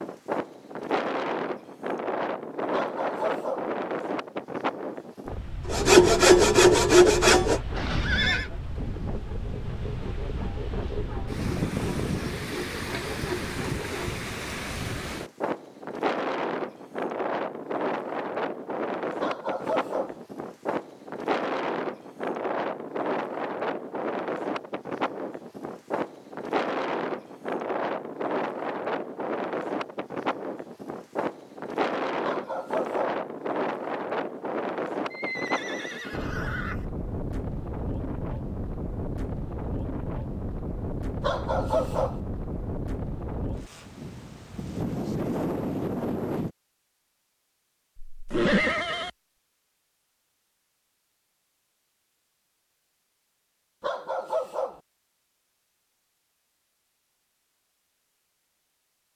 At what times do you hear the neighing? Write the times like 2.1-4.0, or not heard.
7.7-8.5, 35.1-36.9, 48.1-49.1.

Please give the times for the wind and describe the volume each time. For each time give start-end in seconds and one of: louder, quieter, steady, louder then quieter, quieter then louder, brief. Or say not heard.
0.0-46.5 steady.